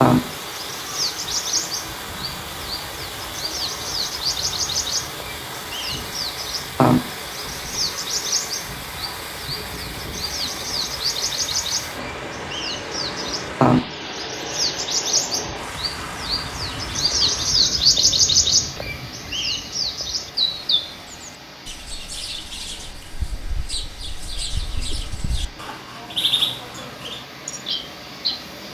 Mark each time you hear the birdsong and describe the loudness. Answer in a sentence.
The birdsong can be heard from 0.0 to 28.4 s, getting louder then quieter.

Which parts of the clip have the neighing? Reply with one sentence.
The neighing can't be heard in this clip.